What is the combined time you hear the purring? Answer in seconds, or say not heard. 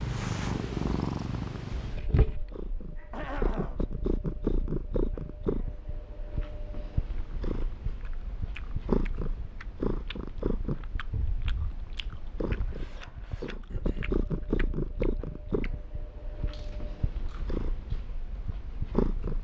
19 s.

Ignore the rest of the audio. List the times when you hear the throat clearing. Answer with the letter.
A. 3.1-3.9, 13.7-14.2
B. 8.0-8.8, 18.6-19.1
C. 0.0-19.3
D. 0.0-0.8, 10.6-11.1
A.